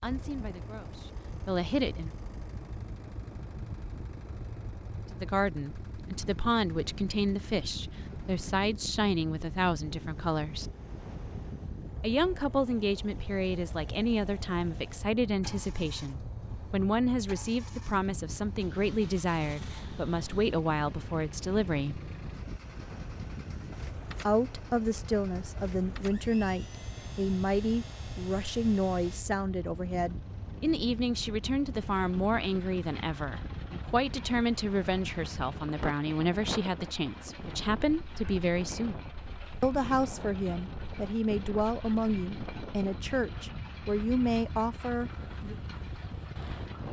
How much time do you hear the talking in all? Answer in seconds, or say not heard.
39 s.